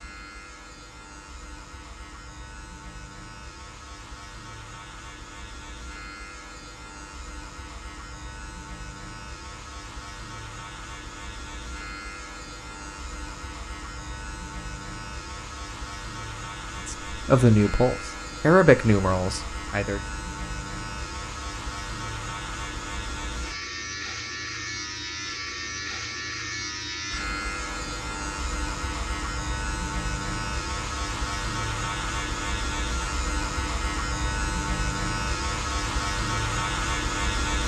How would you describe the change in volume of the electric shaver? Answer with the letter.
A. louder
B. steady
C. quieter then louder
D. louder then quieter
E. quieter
A.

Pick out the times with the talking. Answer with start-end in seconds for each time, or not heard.
16.9-20.0.